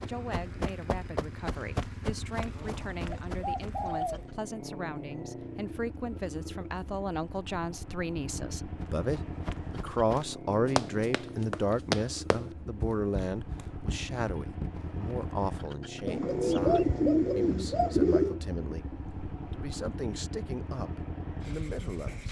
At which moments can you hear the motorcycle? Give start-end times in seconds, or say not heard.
0.0-22.2.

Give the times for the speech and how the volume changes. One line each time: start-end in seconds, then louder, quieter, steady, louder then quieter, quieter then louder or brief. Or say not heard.
0.1-18.9 louder then quieter
19.5-22.2 brief.